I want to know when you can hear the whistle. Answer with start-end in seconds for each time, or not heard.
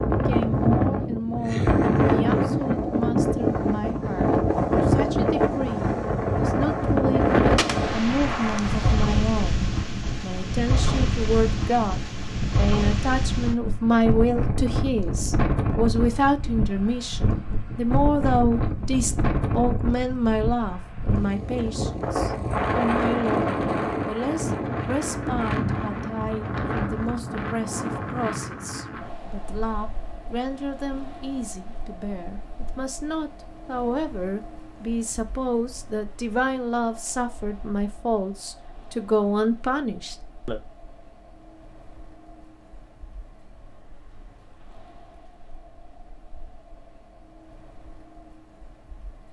not heard.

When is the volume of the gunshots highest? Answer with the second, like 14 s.
8 s.